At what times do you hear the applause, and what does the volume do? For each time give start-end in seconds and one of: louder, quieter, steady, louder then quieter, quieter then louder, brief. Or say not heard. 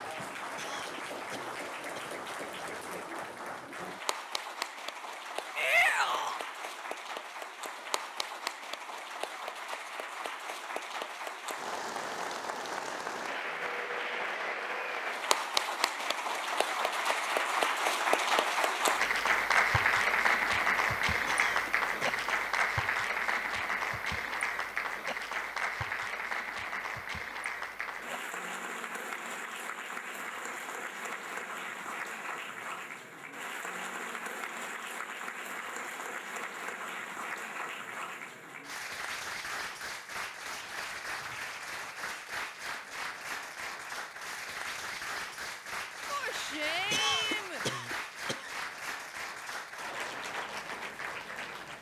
0.0-51.7 louder then quieter.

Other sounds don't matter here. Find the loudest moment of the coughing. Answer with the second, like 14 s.
47 s.